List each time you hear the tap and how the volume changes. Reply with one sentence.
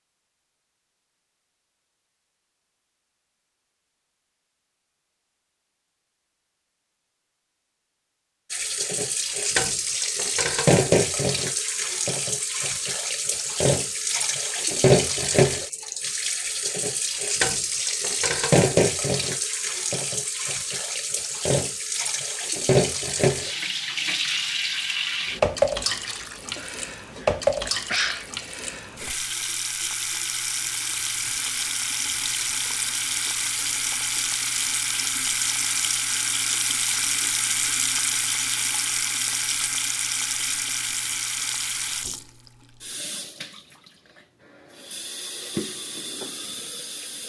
The tap can be heard from 8.5 to 47.2 s, getting quieter.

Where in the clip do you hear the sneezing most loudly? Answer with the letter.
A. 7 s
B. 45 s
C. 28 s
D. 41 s
C.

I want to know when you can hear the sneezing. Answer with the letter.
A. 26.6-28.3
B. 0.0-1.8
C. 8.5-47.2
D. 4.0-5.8
A.